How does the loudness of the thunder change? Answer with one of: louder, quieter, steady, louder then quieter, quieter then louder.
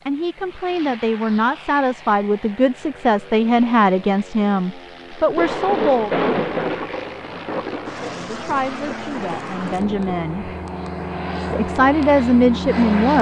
quieter.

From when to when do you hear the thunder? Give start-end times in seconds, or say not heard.
5.3-10.2.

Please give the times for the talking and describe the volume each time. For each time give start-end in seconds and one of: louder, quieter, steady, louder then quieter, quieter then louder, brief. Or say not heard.
0.1-6.3 steady
8.0-10.5 brief
11.5-13.1 brief.